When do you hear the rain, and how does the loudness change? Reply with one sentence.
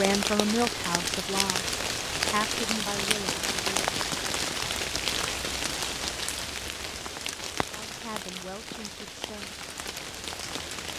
The rain can be heard from 0.0 to 10.9 s, getting quieter.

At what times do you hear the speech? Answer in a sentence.
The speech can be heard from 0.0 to 3.9 s and from 7.7 to 9.6 s.